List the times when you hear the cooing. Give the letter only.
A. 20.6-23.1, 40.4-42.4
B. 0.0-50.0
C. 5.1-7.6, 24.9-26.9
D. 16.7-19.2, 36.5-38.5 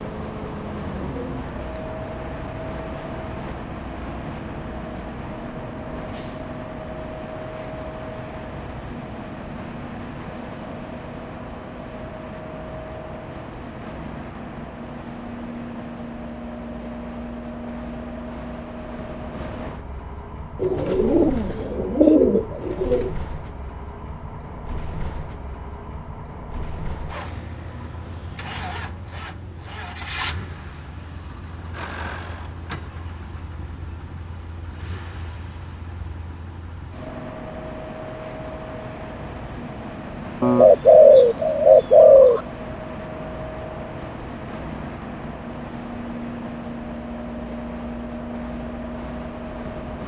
A.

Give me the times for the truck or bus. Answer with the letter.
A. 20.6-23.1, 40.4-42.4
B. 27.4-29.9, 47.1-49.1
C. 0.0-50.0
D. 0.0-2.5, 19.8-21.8
C.